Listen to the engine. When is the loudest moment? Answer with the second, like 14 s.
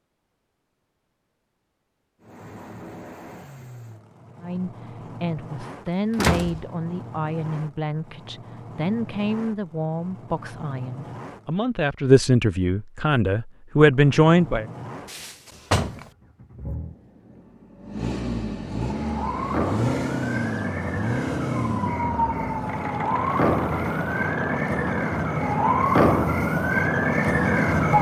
20 s.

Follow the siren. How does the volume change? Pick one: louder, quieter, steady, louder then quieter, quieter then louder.
louder.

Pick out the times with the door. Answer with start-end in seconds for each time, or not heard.
6.2-6.7, 15.1-16.1.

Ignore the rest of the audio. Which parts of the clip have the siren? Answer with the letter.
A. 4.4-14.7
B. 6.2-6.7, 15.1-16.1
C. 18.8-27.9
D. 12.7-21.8
C.